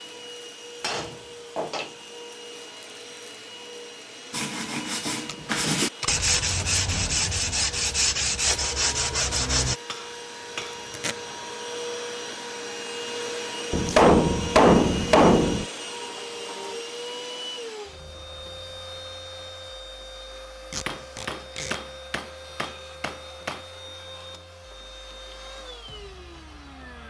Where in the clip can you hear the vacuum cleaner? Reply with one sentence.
You can hear the vacuum cleaner from 0.0 to 27.0 s.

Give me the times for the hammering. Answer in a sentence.
The hammering can be heard from 0.8 to 1.9 s, from 9.8 to 10.8 s, from 13.7 to 15.7 s and from 20.9 to 23.6 s.